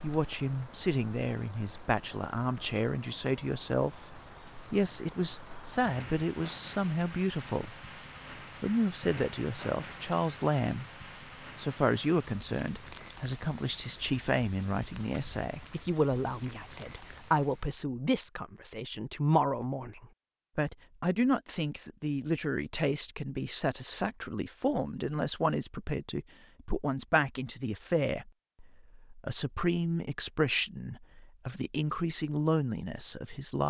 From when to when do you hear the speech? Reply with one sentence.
The speech can be heard from 0.0 to 4.0 s, from 4.7 to 7.8 s, from 8.6 to 10.8 s and from 11.6 to 33.6 s.